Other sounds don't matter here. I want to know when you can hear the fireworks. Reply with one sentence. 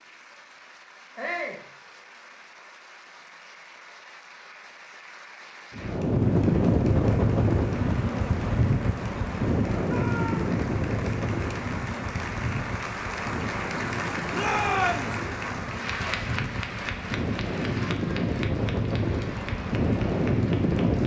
The fireworks can't be heard in this clip.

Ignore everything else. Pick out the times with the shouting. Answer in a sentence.
You can hear the shouting from 1.1 to 1.6 s, from 9.8 to 10.6 s and from 14.3 to 15.1 s.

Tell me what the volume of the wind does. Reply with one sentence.
The volume of the wind goes down, then up.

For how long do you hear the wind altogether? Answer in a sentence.
The wind can be heard for 15 seconds in total.